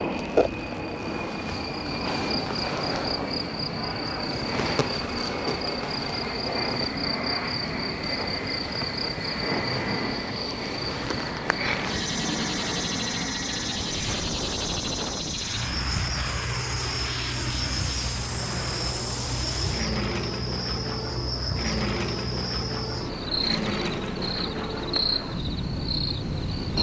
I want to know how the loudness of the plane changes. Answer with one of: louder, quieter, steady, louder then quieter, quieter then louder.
steady.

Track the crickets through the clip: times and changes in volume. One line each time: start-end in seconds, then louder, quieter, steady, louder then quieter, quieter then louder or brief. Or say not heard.
0.0-26.7 steady.